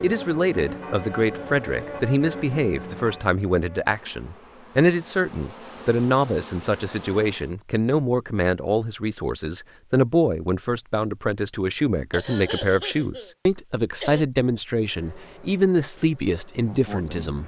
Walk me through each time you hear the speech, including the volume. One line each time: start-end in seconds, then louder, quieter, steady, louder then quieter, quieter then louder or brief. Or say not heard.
0.0-17.4 steady.